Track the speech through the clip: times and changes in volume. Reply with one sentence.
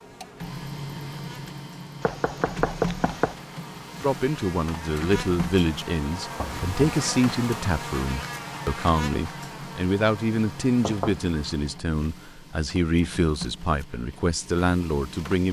You can hear the speech from 4.0 to 15.4 s, at a steady volume.